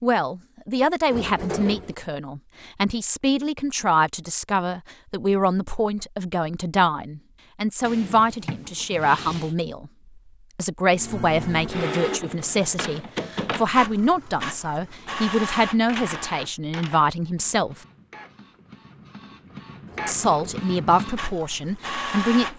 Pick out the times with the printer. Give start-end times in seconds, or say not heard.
10.9-22.5.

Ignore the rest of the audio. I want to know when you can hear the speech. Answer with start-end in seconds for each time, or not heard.
0.0-9.9, 10.6-17.8, 20.1-22.5.